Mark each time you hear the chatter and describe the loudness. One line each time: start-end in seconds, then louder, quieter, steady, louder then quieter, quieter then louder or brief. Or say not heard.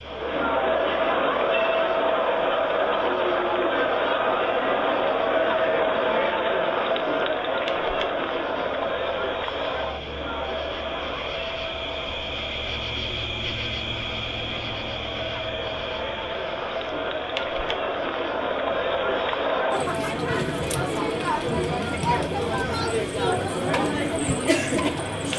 0.0-25.3 quieter then louder.